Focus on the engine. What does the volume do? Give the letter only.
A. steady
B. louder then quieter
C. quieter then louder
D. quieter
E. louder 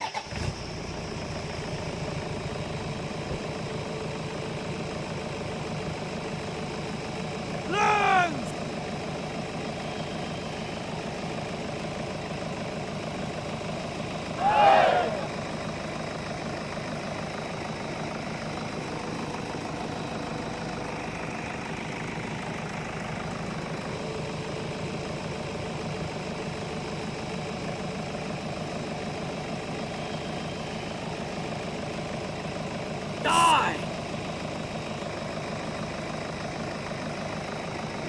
A.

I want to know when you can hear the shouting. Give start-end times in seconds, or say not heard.
7.7-8.5, 14.3-15.3, 33.2-33.9.